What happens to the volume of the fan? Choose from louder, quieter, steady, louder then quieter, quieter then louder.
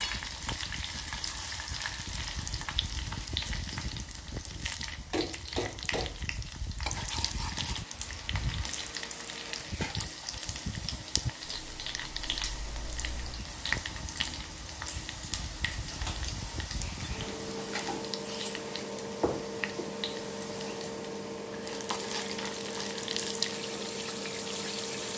louder.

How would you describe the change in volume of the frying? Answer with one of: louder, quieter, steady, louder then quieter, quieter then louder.
steady.